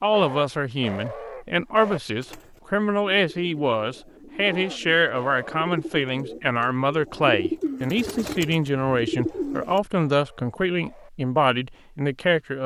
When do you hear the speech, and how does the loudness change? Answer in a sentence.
The speech can be heard from 0.0 to 12.6 s, at a steady volume.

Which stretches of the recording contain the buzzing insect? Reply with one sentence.
The buzzing insect can't be heard in this clip.